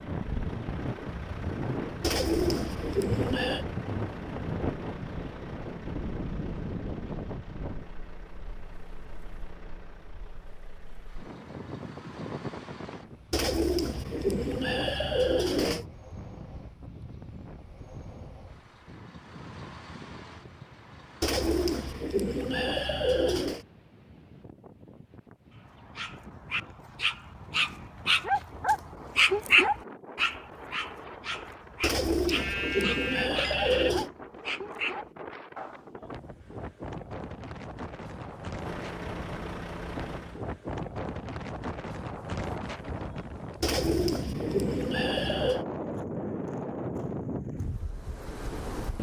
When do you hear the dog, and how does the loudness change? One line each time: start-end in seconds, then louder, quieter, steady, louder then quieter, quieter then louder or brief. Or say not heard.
25.8-35.9 louder then quieter.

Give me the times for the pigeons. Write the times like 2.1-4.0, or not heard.
2.0-3.6, 13.3-15.8, 21.2-23.6, 31.8-34.1, 43.6-45.6.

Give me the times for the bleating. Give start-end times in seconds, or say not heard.
32.4-34.0.